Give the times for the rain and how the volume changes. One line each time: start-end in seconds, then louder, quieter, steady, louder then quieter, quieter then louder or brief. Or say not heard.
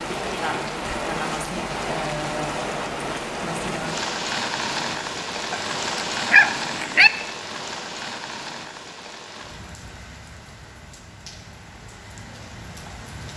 0.0-13.3 quieter.